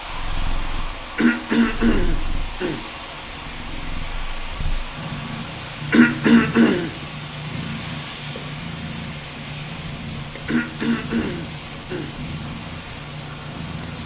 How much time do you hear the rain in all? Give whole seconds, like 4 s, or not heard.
14 s.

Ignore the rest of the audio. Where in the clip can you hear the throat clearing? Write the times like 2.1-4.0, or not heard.
1.1-2.9, 5.9-7.0, 10.4-12.2.